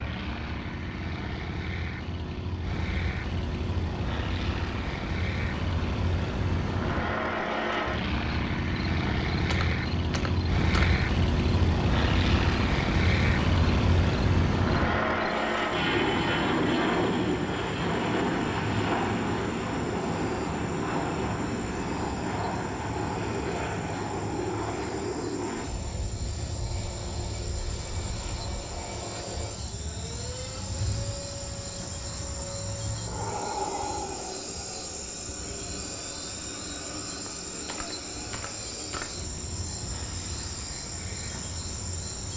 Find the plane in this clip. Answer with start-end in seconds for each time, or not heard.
0.0-42.3.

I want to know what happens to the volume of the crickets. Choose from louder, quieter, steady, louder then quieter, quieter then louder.
louder.